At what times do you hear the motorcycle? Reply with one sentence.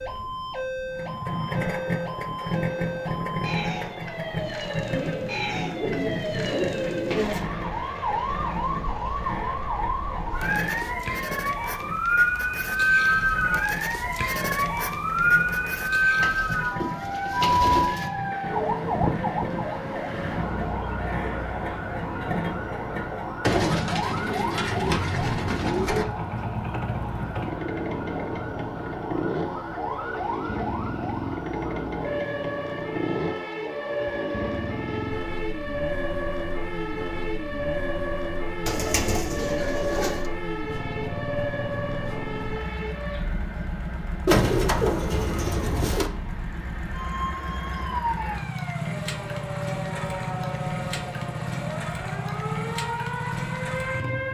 You can hear the motorcycle from 0.0 to 54.3 s.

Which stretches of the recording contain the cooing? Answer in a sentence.
You can hear the cooing from 4.9 to 7.5 s, from 16.2 to 18.1 s, from 23.4 to 26.1 s, from 38.6 to 40.2 s and from 44.2 to 46.1 s.